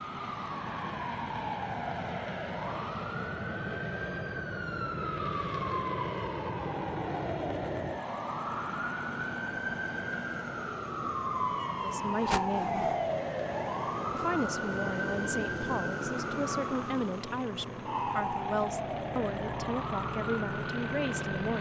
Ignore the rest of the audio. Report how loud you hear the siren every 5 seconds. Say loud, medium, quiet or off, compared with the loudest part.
medium, loud, loud, loud, medium.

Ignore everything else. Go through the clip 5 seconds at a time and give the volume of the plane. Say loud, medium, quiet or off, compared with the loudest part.
loud, loud, medium, medium, loud.